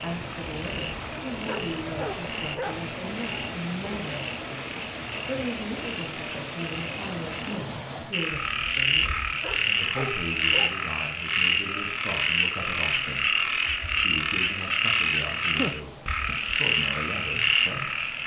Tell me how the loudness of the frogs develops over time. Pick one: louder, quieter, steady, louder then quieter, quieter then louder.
louder.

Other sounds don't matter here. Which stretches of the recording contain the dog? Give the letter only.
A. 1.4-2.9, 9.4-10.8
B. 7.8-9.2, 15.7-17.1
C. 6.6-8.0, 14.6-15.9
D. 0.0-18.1
A.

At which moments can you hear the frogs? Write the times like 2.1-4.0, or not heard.
0.0-18.2.